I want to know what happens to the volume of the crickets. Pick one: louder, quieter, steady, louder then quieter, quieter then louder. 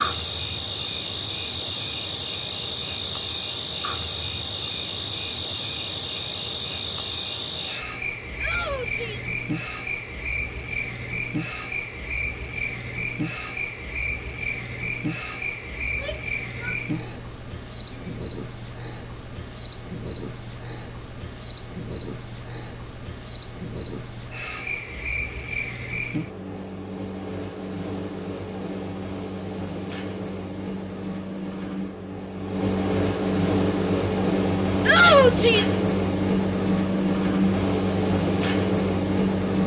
louder.